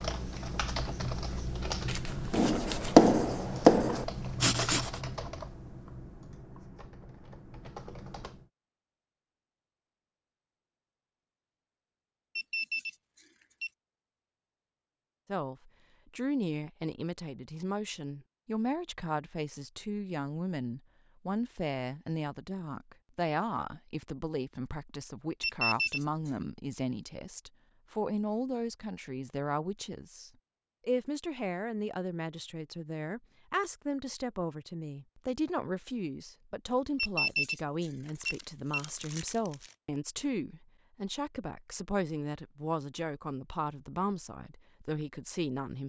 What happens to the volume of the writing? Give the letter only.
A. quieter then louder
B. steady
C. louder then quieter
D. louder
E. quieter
C.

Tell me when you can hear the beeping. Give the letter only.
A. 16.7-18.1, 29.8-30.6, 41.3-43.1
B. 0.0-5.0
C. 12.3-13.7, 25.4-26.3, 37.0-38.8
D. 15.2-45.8
C.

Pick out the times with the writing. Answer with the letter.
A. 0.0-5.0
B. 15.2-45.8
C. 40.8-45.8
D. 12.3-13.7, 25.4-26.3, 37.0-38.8
A.